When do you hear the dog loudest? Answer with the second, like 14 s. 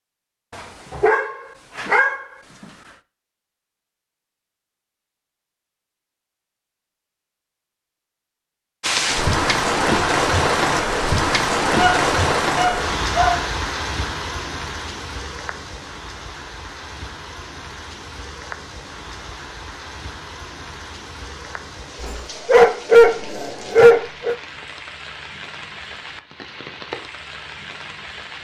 23 s.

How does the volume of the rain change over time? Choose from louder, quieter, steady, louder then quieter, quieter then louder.
quieter.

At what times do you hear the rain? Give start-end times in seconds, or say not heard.
8.8-28.3.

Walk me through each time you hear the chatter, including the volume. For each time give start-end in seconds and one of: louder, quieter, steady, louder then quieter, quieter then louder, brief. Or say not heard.
not heard.